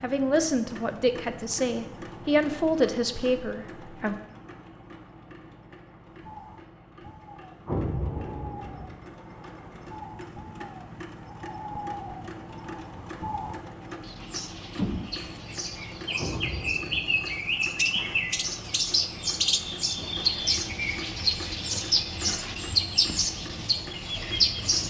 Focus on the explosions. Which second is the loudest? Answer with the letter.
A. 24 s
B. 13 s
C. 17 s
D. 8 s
D.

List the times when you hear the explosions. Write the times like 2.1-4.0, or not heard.
7.7-8.9, 16.1-17.3.